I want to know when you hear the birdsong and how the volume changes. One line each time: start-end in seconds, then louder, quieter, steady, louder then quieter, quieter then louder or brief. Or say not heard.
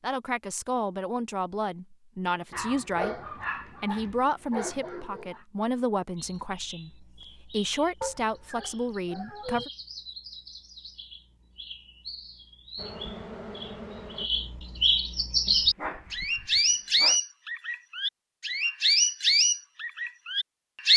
6.2-20.9 louder.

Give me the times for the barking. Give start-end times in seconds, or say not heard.
2.5-5.4, 8.0-9.7, 15.4-17.2.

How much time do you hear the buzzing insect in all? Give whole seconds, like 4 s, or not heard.
2 s.